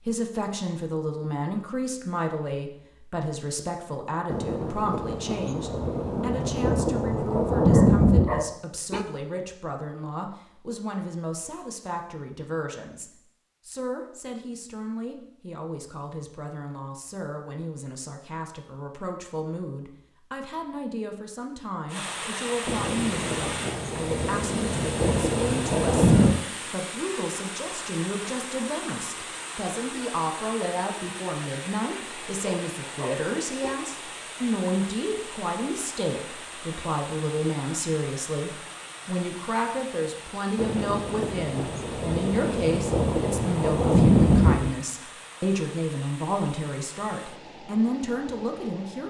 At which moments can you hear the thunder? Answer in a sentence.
You can hear the thunder from 4.3 to 8.4 s, from 22.6 to 26.4 s and from 40.5 to 44.8 s.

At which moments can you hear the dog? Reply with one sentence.
You can hear the dog from 7.7 to 9.1 s and from 32.4 to 33.8 s.